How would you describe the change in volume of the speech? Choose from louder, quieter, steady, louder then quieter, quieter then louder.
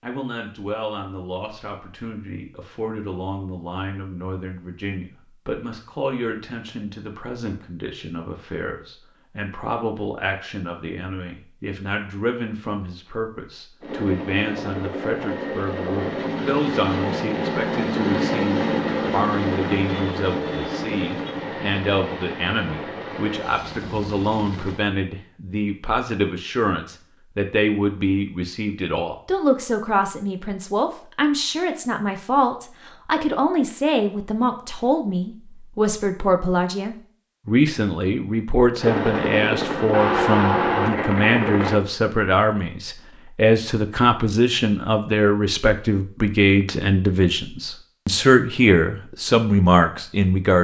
louder.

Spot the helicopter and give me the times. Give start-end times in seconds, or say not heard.
13.8-24.8, 38.8-41.8.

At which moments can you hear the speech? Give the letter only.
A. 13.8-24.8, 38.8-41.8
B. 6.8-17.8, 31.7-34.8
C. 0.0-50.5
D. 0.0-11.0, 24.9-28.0
C.